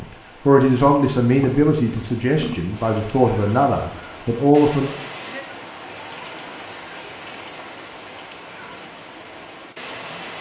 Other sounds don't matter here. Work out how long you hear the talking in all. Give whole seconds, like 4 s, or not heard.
5 s.